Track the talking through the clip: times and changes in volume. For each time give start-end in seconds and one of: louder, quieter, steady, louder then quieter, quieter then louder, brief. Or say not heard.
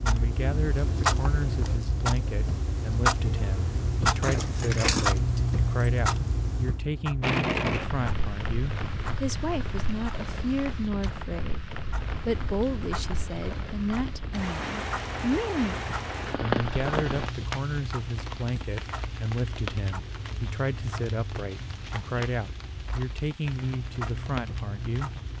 0.0-25.3 steady.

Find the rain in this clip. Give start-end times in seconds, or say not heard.
7.2-25.3.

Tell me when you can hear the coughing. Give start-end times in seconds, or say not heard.
not heard.